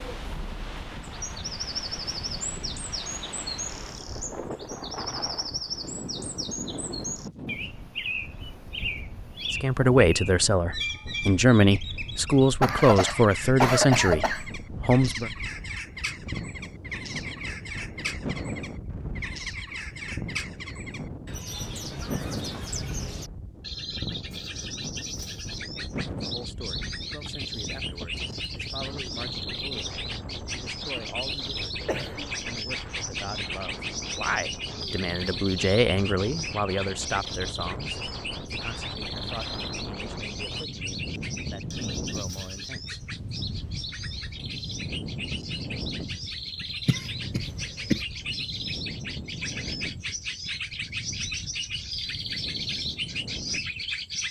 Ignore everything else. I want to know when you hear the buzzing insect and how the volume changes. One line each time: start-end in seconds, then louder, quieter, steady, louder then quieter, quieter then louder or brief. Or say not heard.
not heard.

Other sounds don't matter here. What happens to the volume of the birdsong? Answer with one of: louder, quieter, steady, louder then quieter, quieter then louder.
steady.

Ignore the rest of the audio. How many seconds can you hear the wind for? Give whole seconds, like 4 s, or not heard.
54 s.